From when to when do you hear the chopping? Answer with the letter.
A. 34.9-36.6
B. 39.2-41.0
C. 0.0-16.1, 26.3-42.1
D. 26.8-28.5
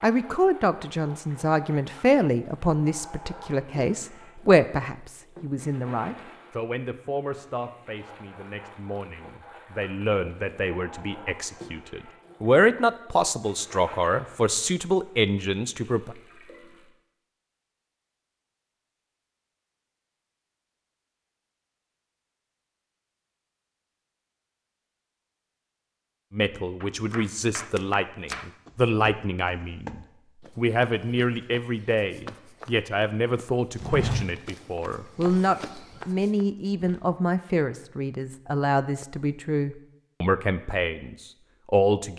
D.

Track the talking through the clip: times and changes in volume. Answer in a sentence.
You can hear the talking from 0.0 to 16.1 s, getting quieter then louder; and from 26.3 to 42.1 s, at a steady volume.